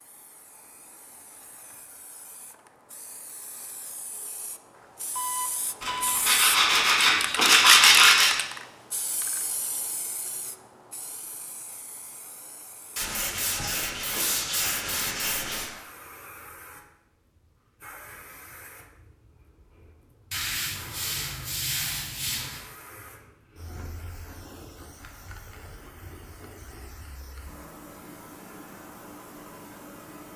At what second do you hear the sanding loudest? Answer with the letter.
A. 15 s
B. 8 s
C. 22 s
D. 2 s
B.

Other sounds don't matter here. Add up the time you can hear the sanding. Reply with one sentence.
You can hear the sanding for 8 seconds altogether.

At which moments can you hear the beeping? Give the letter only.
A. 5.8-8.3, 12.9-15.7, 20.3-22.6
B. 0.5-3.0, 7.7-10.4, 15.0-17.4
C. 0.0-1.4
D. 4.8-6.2
D.